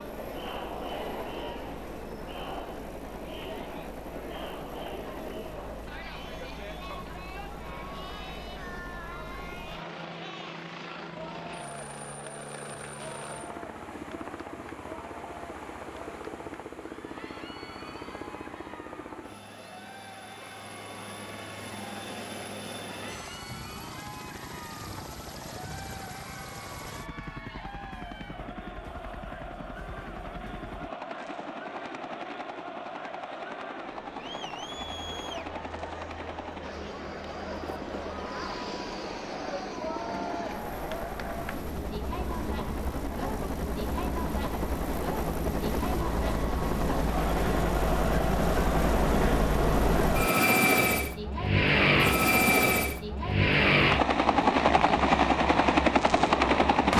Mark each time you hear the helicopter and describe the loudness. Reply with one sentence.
You can hear the helicopter from 0.0 to 56.9 s, getting louder.